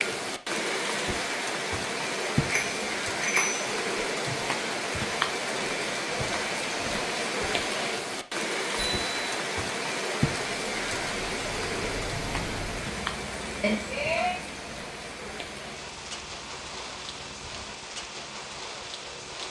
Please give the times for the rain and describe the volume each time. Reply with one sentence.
The rain can be heard from 0.0 to 19.4 s, getting quieter.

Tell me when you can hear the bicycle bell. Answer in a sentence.
The bicycle bell can be heard from 2.5 to 3.7 s, from 8.8 to 9.3 s and from 13.6 to 14.4 s.